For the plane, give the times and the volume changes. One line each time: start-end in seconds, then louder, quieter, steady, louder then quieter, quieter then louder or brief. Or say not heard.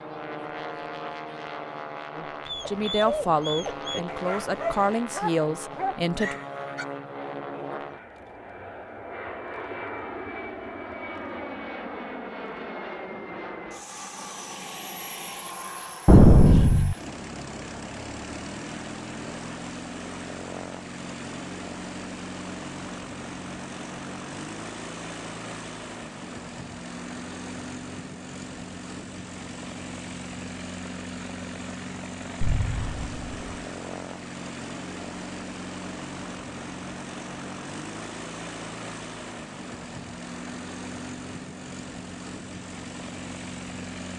0.0-44.1 steady.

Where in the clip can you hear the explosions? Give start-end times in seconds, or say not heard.
16.1-16.9, 32.4-33.4.